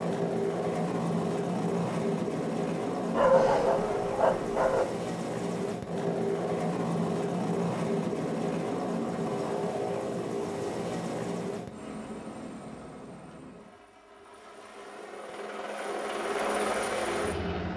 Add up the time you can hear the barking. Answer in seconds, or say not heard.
2 s.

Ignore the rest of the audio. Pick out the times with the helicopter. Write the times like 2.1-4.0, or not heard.
0.0-17.7.